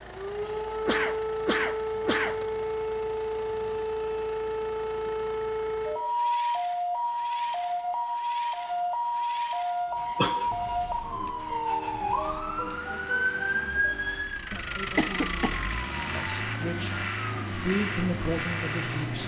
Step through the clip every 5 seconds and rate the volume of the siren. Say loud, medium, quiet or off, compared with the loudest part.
loud, loud, loud, quiet.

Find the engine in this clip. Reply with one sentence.
The engine can be heard from 0.0 to 19.2 s.